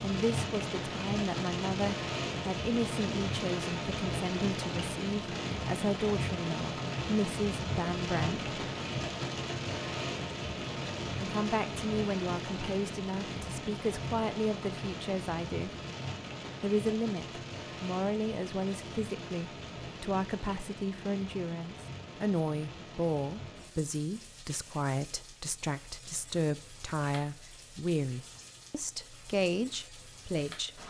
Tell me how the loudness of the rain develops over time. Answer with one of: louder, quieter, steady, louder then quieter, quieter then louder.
quieter.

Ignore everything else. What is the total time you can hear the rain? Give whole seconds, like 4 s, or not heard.
31 s.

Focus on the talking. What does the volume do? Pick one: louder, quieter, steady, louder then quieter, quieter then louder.
steady.